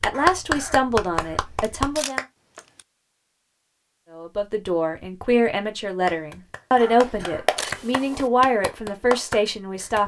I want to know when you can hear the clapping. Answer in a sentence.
The clapping can be heard from 0.0 to 2.2 s and from 6.0 to 10.0 s.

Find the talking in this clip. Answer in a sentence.
The talking can be heard from 0.0 to 2.2 s and from 4.1 to 10.0 s.